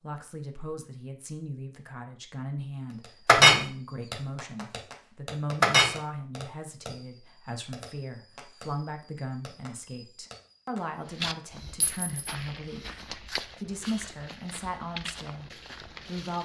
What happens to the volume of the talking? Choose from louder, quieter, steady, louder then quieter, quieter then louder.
steady.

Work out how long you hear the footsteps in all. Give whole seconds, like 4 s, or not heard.
5 s.